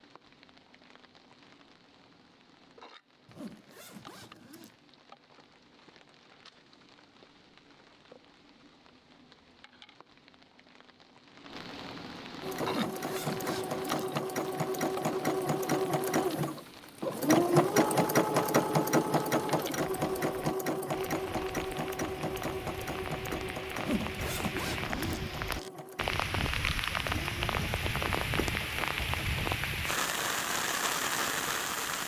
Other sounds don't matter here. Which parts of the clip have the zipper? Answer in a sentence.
The zipper can be heard from 3.2 to 4.8 s, from 12.6 to 14.1 s and from 23.8 to 25.7 s.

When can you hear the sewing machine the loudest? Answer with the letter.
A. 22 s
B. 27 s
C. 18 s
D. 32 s
C.